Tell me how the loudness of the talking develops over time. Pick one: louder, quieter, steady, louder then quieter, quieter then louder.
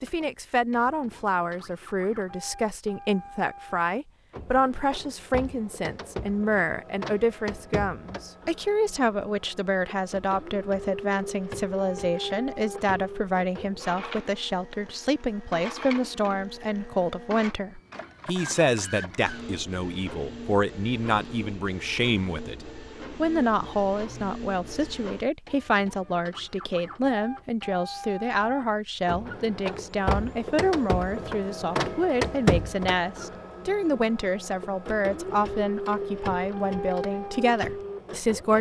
steady.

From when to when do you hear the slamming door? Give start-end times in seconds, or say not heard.
not heard.